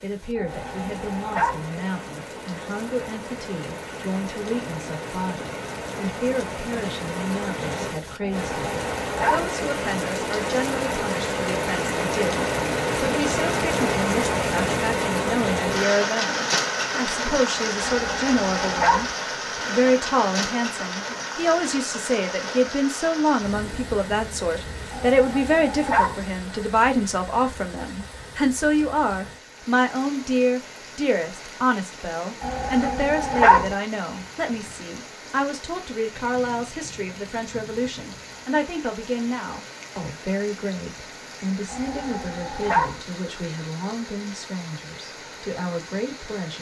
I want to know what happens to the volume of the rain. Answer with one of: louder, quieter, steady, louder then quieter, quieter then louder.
louder then quieter.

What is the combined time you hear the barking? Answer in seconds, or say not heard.
8 s.